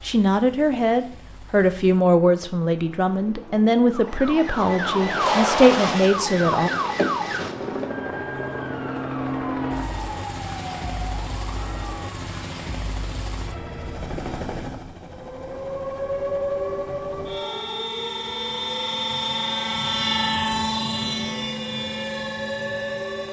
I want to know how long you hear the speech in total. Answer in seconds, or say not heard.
7 s.